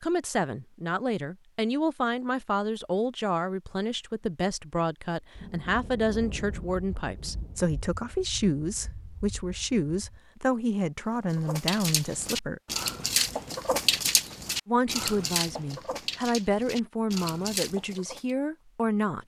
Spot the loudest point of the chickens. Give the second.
14 s.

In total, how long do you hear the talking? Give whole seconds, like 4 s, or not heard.
17 s.